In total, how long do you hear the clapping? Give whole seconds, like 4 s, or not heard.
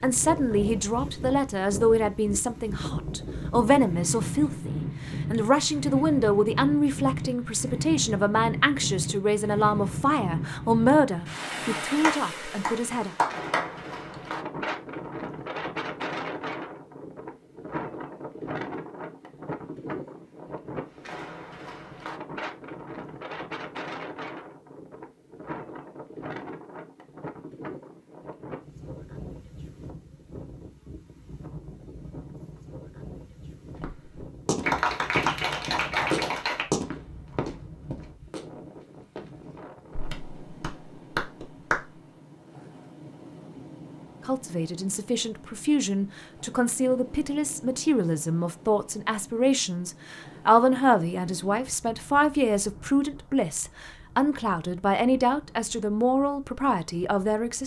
6 s.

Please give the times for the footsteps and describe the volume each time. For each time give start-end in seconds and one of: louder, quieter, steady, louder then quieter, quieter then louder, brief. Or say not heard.
33.8-39.3 louder then quieter.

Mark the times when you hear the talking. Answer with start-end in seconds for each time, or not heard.
0.0-13.1, 44.2-57.6.